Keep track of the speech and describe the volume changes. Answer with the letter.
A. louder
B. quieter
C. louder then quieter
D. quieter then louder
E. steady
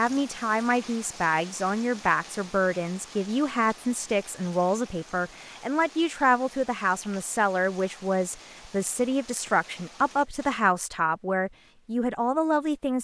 E.